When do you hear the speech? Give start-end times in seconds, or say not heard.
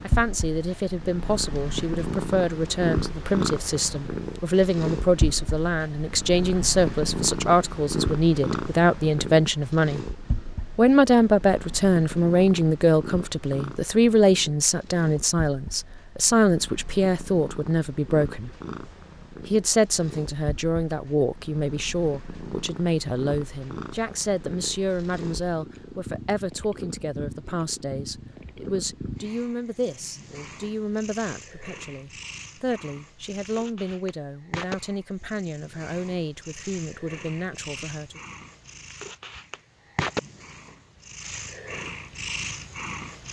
0.0-10.1, 10.8-18.5, 19.4-38.2.